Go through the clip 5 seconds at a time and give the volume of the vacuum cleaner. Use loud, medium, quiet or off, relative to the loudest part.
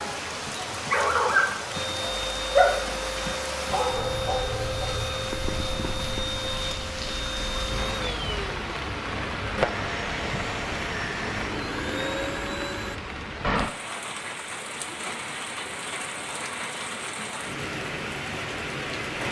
loud, loud, loud, off.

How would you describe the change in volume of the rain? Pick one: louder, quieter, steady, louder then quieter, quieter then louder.
steady.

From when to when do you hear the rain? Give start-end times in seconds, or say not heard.
0.0-19.2.